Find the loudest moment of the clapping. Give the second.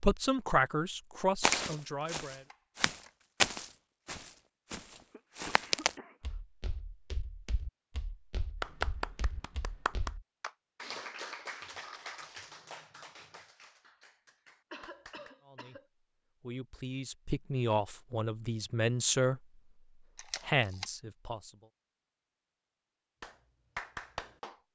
9 s.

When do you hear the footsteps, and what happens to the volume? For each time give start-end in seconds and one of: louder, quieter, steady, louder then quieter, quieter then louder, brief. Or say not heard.
1.4-10.2 louder then quieter.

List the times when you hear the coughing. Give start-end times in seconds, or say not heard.
5.1-6.4, 14.7-15.8.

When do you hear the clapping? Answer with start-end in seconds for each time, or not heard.
8.6-15.3, 23.2-24.6.